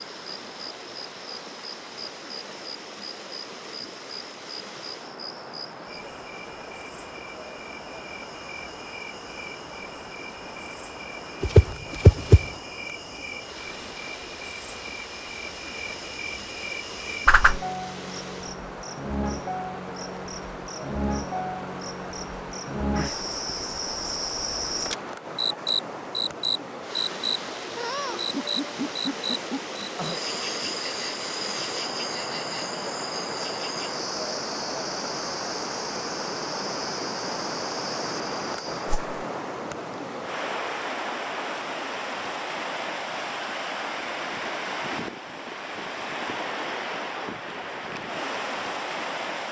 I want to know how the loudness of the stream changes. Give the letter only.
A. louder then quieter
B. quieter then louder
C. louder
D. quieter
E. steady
C.